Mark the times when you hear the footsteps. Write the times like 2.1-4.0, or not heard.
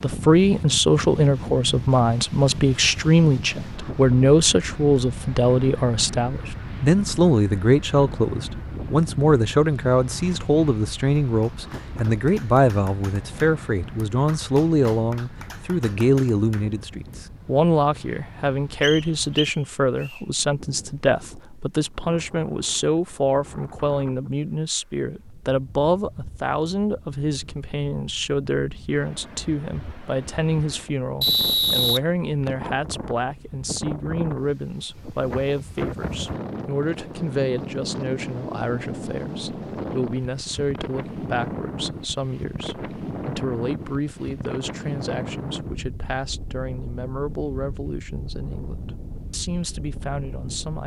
not heard.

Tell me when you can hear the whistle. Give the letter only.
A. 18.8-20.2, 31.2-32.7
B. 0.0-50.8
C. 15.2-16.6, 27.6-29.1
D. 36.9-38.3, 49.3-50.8
A.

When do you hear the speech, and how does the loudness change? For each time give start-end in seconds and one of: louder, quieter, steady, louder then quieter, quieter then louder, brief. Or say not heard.
0.0-50.8 quieter.